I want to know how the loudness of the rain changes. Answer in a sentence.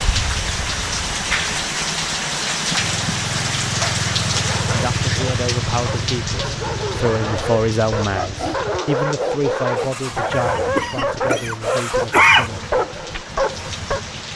The loudness of the rain goes down.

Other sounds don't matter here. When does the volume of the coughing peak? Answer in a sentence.
The loudest moment of the coughing is at 12 seconds.